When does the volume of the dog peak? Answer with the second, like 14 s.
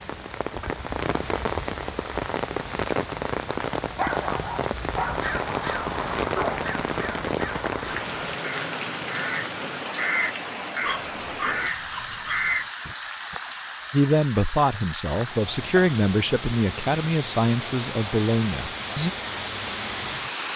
4 s.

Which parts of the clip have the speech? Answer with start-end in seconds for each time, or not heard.
13.9-19.1.